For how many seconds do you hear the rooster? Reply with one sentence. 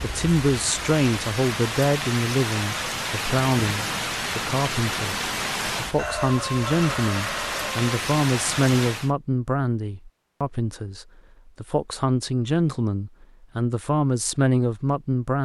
You can hear the rooster for 2 seconds altogether.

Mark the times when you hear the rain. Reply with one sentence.
You can hear the rain from 0.0 to 9.1 s.